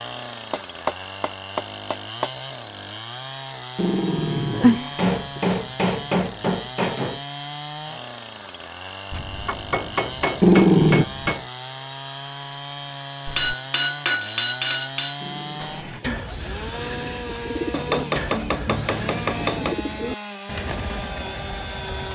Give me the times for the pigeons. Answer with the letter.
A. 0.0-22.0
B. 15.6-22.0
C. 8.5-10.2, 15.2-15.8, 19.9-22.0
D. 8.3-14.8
B.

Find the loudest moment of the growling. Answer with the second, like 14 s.
11 s.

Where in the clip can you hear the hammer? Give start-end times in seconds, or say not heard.
0.5-2.3, 5.0-7.2, 9.1-11.4, 13.2-15.2, 17.7-19.8.